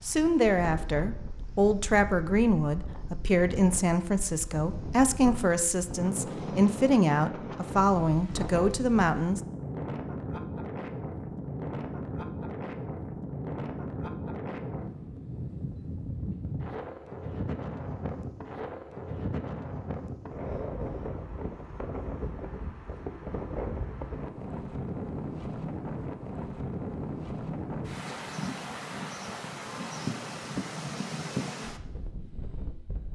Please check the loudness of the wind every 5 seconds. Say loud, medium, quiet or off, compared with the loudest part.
medium, loud, loud, loud, loud, loud, loud.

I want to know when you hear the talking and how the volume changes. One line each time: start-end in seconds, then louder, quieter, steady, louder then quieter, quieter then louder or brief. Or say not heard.
0.0-9.4 steady.